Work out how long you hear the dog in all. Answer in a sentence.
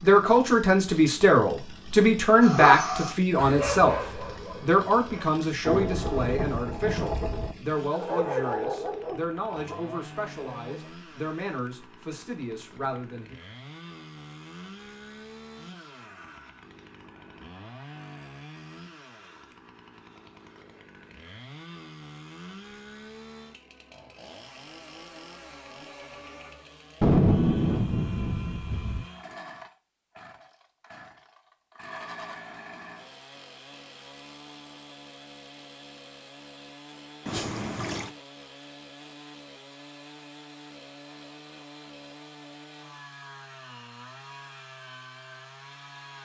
The dog can be heard for 6 seconds in total.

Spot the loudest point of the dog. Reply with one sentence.
The loudest moment of the dog is at 3 seconds.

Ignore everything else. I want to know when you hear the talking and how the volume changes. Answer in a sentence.
The talking can be heard from 0.0 to 13.3 s, getting quieter.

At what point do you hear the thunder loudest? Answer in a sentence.
The loudest moment of the thunder is at 27 seconds.